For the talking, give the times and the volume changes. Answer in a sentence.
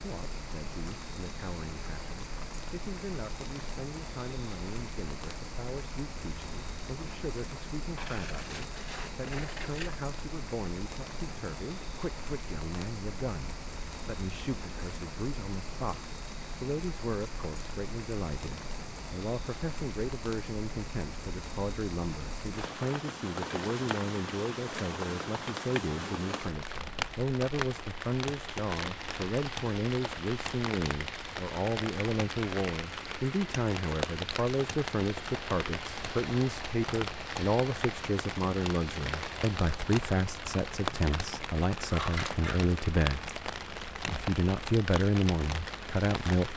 You can hear the talking from 0.0 to 43.3 s, getting louder; and briefly from 44.0 to 46.5 s.